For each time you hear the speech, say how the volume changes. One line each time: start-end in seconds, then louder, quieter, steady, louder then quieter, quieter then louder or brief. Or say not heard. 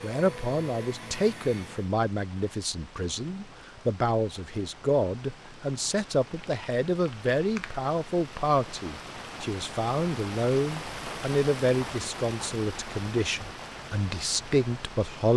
0.0-15.3 steady.